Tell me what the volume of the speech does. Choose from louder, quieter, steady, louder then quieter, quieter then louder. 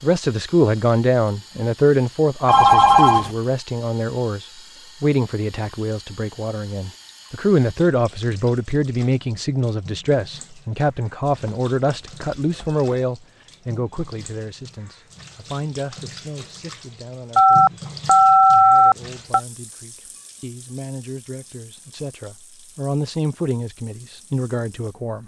quieter then louder.